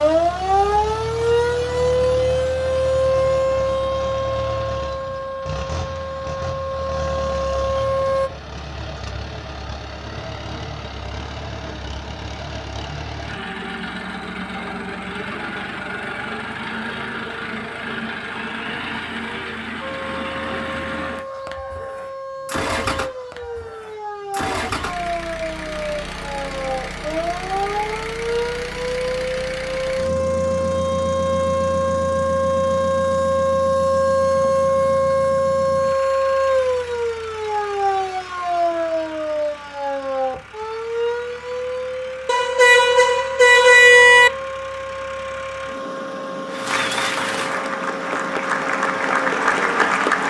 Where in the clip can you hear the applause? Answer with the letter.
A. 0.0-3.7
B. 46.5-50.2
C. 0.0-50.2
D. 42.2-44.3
B.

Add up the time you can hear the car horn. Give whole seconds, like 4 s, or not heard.
2 s.